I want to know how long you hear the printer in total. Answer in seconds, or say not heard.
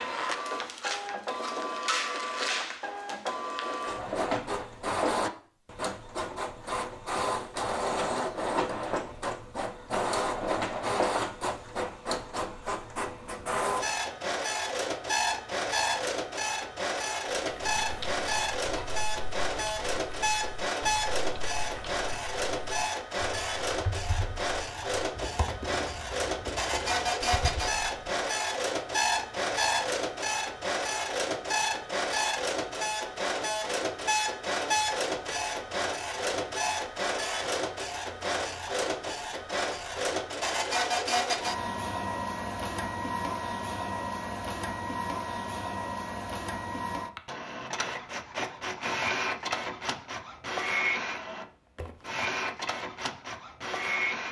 54 s.